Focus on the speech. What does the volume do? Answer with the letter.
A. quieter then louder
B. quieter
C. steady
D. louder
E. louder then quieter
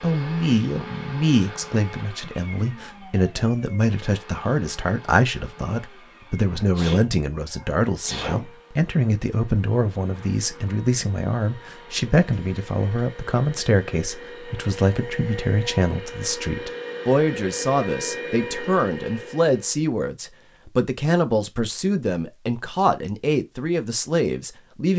C.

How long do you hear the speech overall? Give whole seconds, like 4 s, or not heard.
25 s.